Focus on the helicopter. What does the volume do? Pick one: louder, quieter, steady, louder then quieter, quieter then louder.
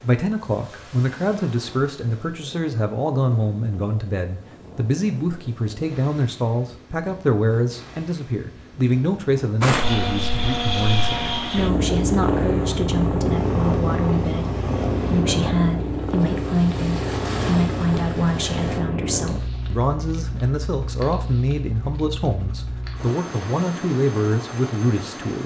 quieter.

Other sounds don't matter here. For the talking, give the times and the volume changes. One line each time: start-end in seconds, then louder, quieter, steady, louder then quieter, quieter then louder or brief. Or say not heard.
0.0-25.4 steady.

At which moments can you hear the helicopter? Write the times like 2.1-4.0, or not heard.
9.6-25.4.